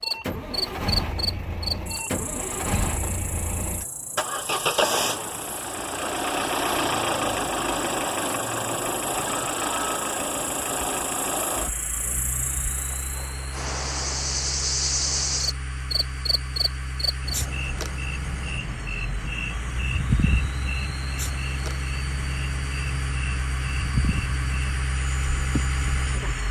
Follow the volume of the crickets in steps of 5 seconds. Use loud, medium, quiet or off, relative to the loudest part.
loud, medium, loud, loud, loud, medium.